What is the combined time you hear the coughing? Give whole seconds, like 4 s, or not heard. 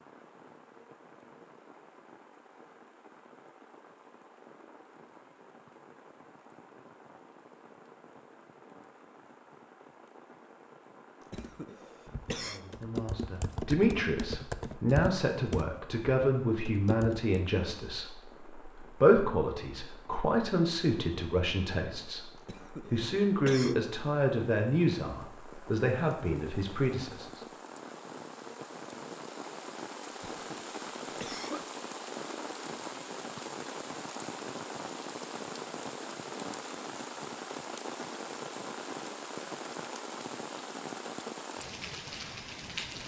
4 s.